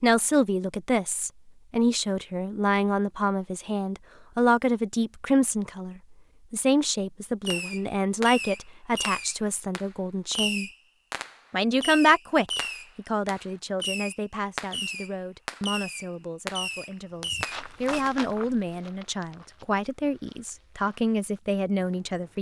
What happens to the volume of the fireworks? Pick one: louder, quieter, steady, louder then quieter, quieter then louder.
steady.